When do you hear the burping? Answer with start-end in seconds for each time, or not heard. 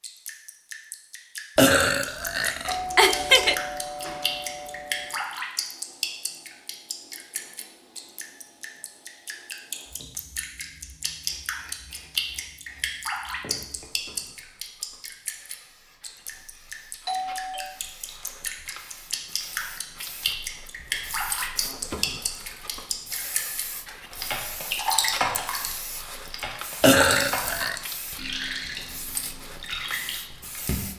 1.6-3.5, 26.8-27.8.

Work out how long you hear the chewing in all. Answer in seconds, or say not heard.
not heard.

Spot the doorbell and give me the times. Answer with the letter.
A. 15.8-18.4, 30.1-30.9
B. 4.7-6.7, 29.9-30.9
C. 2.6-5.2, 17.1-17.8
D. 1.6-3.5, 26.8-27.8
C.